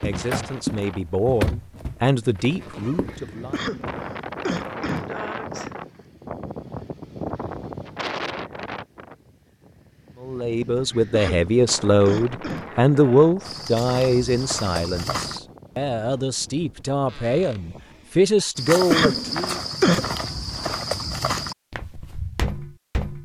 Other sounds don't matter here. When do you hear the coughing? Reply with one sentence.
The coughing can be heard from 3.5 to 5.1 s, from 11.1 to 12.7 s and from 18.9 to 20.1 s.